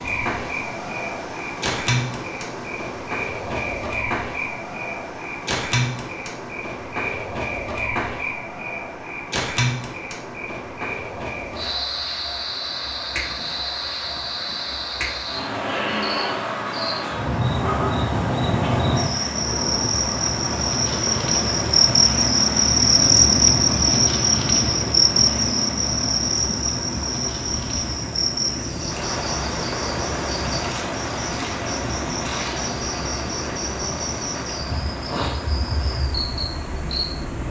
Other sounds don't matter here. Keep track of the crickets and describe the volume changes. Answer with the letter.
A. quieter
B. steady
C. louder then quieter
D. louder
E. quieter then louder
C.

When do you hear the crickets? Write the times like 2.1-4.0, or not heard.
0.0-37.4.